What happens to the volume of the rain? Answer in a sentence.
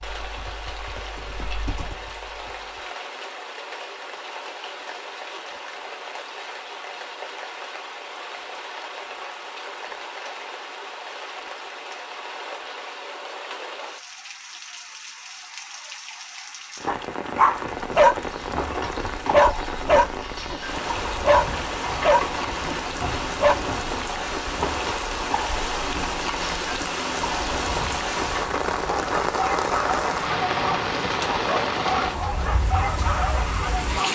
The volume of the rain goes up.